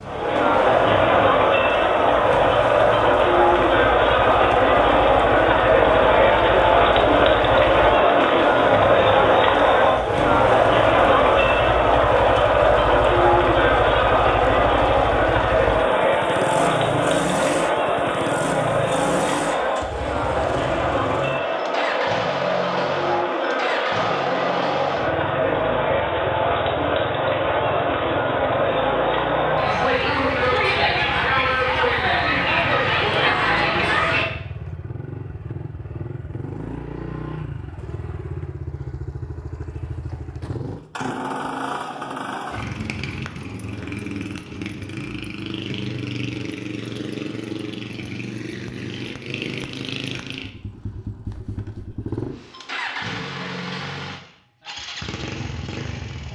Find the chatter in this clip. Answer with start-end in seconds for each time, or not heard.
0.0-34.2.